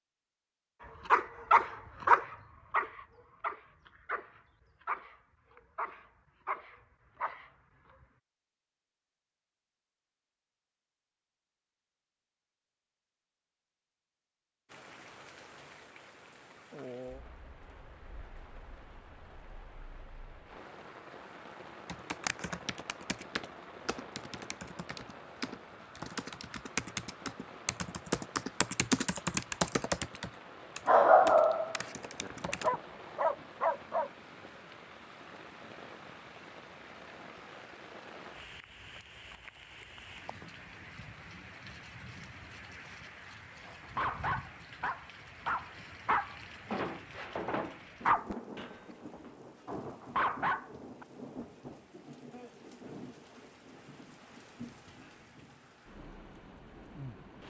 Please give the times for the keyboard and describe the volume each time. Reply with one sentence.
You can hear the keyboard from 21.9 to 32.8 s, getting louder then quieter.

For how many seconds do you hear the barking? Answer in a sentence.
You can hear the barking for 18 seconds altogether.